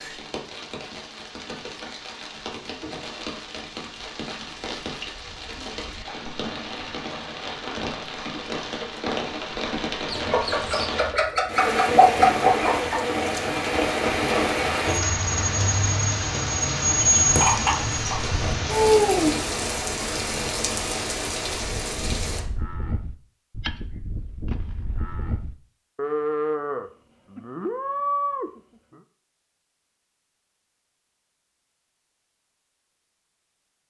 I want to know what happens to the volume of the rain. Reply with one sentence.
The loudness of the rain goes up.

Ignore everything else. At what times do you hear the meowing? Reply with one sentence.
The meowing can't be heard in this clip.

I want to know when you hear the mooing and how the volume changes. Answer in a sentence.
The mooing can be heard from 21.4 to 29.0 s, getting louder.